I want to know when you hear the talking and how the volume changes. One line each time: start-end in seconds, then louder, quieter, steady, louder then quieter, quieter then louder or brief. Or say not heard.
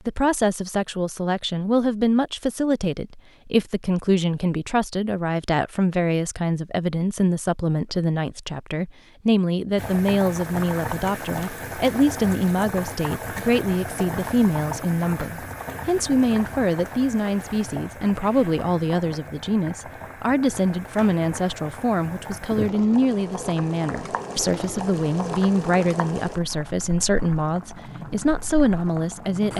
0.1-29.5 steady.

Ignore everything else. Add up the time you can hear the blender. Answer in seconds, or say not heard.
not heard.